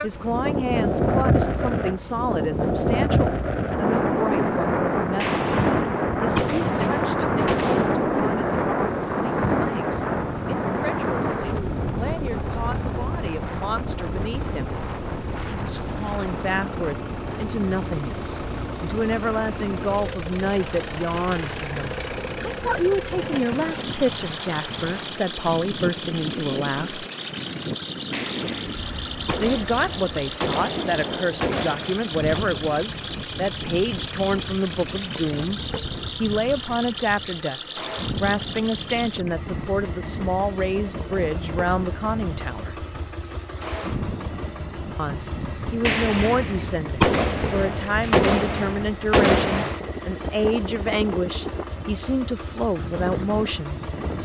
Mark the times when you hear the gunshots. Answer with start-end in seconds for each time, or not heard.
5.2-8.0, 28.1-32.5, 45.9-49.7.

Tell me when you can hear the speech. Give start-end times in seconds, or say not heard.
0.0-5.4, 6.2-14.8, 15.5-27.1, 29.4-35.6, 36.2-42.8, 45.0-54.2.